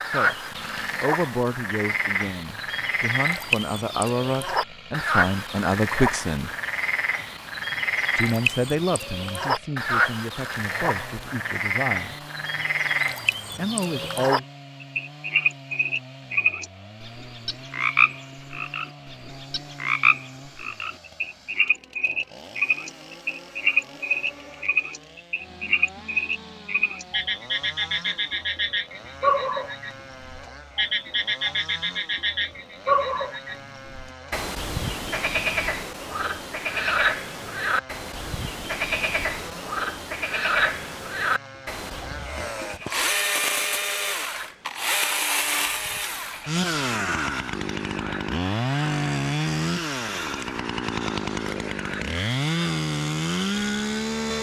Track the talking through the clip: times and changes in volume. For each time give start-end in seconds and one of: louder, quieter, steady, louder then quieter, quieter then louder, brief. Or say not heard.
0.0-6.5 quieter then louder
8.2-12.2 quieter
13.6-14.4 brief.